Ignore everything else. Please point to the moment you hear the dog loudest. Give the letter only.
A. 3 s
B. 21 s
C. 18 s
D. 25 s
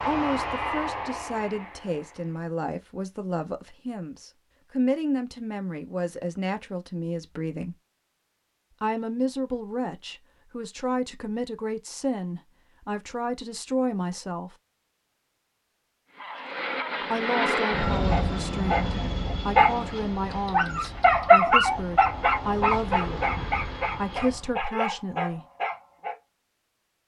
B.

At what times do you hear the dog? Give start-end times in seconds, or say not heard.
17.9-26.1.